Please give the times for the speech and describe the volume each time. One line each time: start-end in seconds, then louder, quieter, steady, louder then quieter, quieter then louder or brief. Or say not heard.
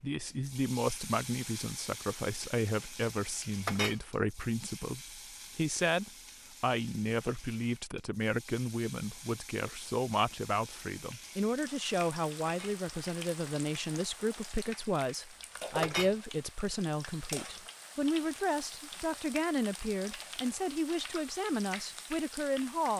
0.0-22.9 steady.